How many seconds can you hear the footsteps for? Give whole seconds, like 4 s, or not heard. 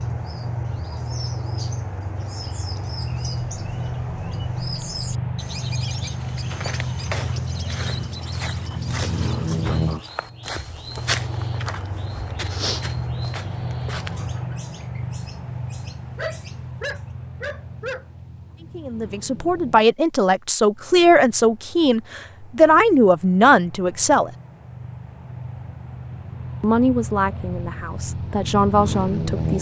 8 s.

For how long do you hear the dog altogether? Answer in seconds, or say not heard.
2 s.